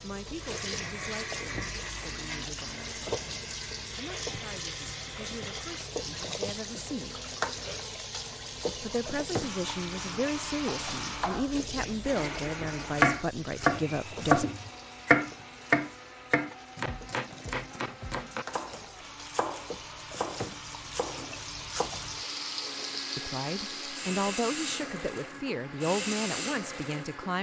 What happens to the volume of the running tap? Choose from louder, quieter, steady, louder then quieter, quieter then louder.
quieter then louder.